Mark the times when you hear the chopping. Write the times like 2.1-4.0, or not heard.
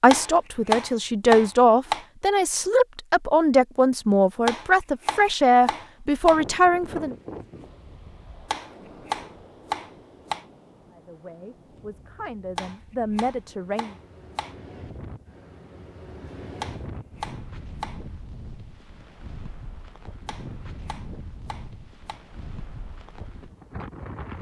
0.1-2.0, 4.5-6.4, 8.5-10.4, 12.6-14.6, 16.6-18.0, 20.2-22.2.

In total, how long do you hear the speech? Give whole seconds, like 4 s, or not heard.
10 s.